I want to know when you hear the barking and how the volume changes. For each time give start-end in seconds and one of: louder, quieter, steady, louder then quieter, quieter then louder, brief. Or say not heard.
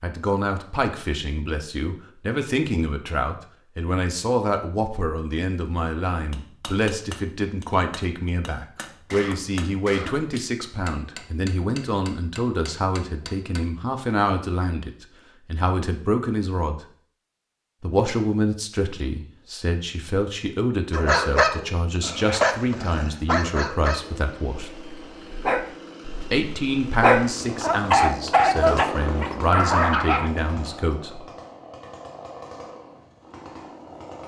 20.9-30.3 quieter then louder.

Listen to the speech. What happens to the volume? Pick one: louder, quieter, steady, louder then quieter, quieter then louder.
steady.